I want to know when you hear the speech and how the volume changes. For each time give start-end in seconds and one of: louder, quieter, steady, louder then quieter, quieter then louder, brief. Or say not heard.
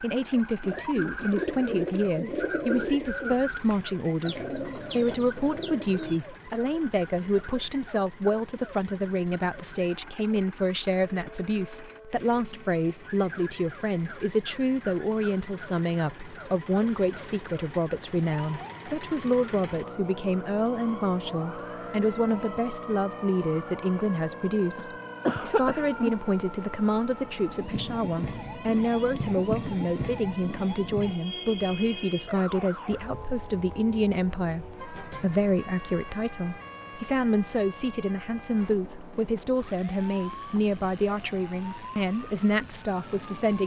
0.0-43.6 steady.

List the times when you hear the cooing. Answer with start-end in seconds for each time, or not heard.
0.6-6.2.